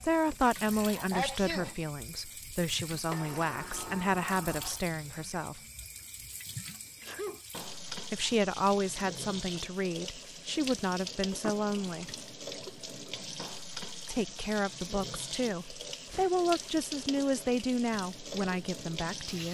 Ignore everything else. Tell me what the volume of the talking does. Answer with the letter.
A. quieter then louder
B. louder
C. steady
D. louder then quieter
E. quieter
C.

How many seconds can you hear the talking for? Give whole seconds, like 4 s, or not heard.
15 s.